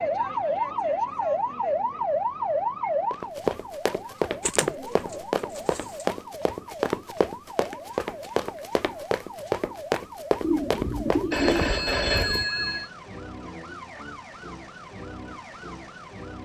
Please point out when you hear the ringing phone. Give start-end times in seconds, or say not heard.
11.3-12.9.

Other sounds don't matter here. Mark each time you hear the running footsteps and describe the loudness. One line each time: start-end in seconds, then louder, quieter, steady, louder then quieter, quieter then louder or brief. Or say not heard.
3.1-11.7 steady.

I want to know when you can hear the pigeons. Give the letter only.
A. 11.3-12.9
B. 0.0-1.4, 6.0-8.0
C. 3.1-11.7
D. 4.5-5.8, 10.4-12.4
D.